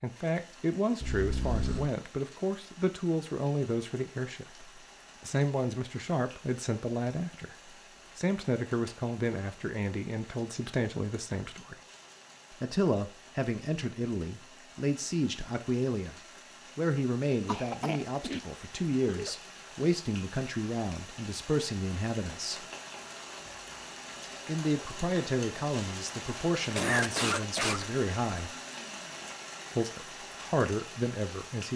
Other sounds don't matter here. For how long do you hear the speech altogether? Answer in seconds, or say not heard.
28 s.